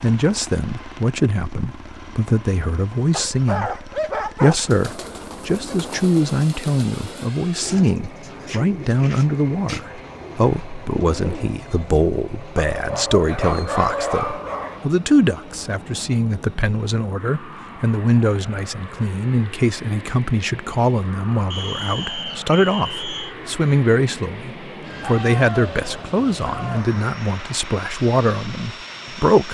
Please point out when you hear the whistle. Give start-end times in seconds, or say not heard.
21.5-23.4.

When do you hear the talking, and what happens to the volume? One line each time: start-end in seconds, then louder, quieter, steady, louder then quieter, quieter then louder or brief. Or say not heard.
0.0-29.4 steady.